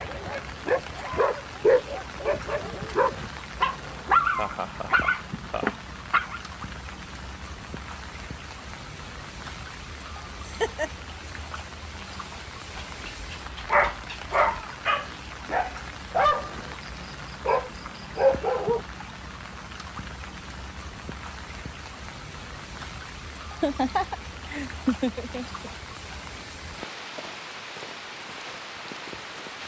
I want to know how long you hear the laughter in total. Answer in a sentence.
You can hear the laughter for 4 seconds altogether.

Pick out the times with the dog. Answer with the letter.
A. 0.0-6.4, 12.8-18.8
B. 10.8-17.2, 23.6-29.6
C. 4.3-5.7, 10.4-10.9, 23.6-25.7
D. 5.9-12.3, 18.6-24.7
A.